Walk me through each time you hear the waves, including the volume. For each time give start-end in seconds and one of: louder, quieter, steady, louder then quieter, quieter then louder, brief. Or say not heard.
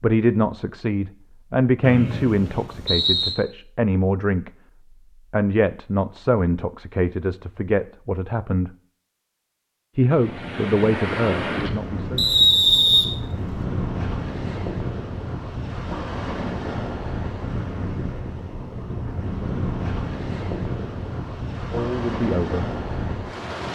10.1-23.7 steady.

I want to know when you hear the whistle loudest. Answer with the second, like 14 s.
13 s.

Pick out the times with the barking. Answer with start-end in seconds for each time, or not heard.
not heard.